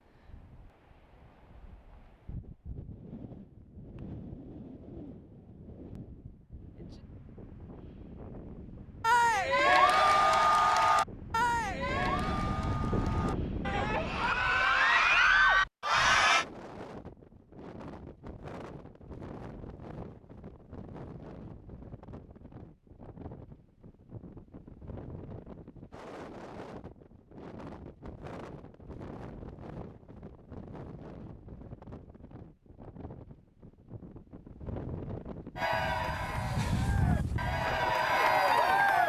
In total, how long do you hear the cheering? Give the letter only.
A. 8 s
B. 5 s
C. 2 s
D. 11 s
D.